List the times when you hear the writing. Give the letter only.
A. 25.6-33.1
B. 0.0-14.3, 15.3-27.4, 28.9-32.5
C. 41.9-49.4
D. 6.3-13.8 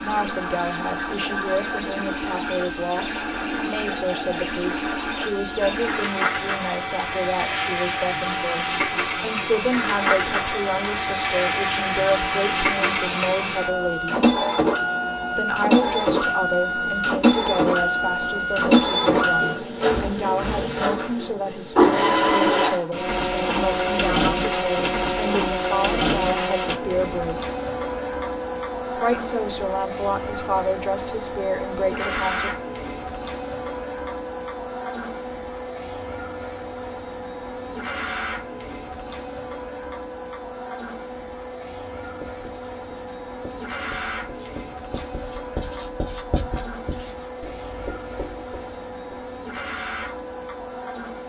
C.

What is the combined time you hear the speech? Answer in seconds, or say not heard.
30 s.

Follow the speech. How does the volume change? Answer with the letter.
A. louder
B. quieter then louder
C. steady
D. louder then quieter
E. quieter
C.